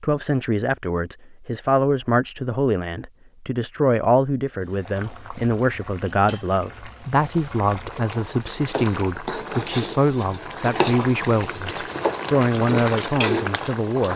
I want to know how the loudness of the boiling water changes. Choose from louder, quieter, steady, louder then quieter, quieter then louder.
louder.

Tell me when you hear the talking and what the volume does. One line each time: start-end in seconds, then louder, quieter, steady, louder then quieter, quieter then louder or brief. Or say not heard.
0.0-14.1 steady.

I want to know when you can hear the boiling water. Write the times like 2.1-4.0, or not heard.
4.6-14.1.